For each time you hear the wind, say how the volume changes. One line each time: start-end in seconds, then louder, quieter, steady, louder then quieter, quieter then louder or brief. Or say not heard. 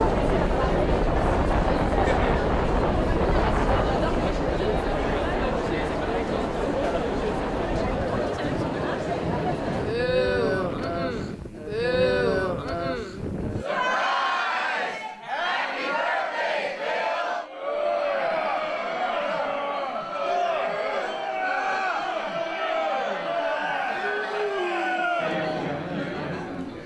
0.0-13.7 quieter.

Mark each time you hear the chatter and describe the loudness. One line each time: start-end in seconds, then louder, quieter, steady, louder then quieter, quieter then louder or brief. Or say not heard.
0.0-26.8 steady.